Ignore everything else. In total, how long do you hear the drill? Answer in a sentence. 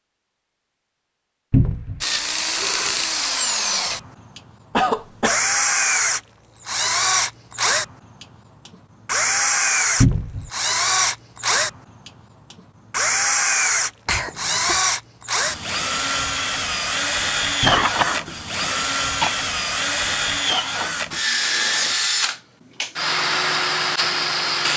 The drill can be heard for 23 seconds in total.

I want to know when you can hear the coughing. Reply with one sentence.
The coughing can be heard from 4.7 to 5.4 s, from 14.1 to 14.8 s and from 17.6 to 19.3 s.